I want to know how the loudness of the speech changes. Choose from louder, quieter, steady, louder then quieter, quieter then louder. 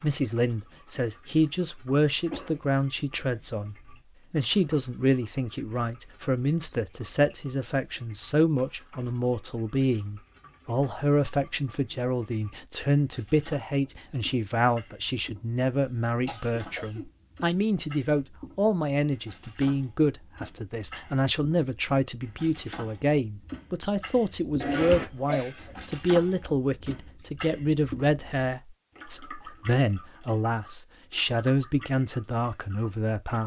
steady.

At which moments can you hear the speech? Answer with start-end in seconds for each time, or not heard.
0.0-33.4.